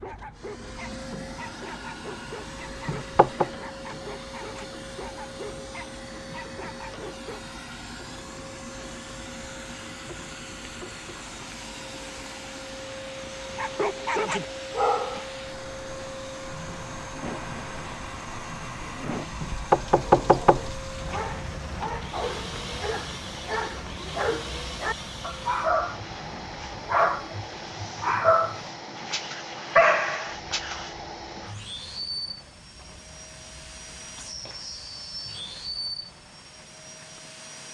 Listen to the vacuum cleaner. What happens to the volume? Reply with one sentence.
The loudness of the vacuum cleaner stays about the same.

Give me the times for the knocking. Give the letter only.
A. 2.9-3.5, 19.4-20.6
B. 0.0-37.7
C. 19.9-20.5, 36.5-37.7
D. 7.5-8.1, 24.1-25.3
A.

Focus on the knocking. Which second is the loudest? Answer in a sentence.
The loudest moment of the knocking is at 20 seconds.